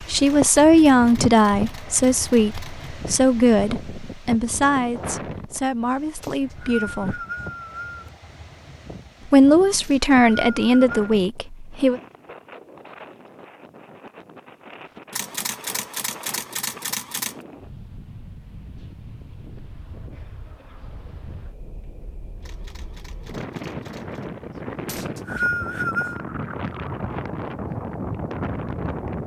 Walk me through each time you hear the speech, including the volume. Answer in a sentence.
The speech can be heard from 0.0 to 7.2 s, getting quieter; and briefly from 9.3 to 12.0 s.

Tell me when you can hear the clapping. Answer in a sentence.
You can't hear the clapping here.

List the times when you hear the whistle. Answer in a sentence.
The whistle can be heard from 6.2 to 8.1 s, from 9.8 to 11.2 s and from 24.9 to 26.2 s.